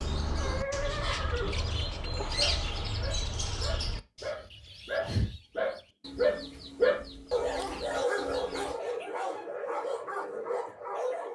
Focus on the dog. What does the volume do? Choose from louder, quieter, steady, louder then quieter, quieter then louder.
louder then quieter.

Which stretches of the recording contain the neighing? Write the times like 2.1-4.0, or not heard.
0.3-1.9.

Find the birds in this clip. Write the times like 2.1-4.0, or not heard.
0.0-8.8.